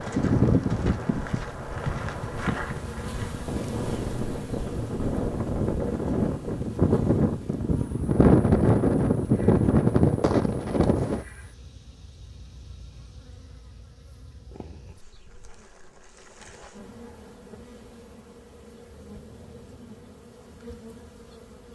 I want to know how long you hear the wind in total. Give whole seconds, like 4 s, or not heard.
11 s.